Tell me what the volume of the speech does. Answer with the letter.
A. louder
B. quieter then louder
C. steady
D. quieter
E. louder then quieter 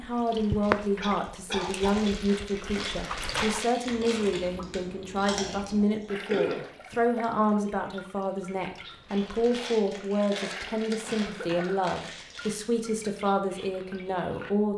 C.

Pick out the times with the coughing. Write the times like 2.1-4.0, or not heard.
1.0-2.0, 6.3-7.0, 11.1-12.2.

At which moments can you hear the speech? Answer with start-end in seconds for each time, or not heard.
0.0-14.7.